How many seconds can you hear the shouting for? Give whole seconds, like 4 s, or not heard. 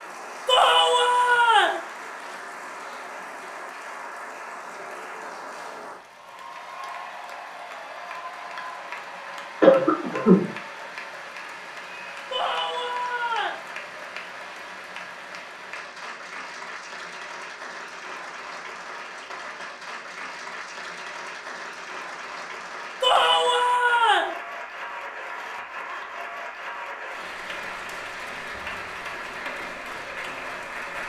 4 s.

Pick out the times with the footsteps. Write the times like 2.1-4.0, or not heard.
not heard.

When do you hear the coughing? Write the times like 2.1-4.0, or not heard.
9.6-10.4.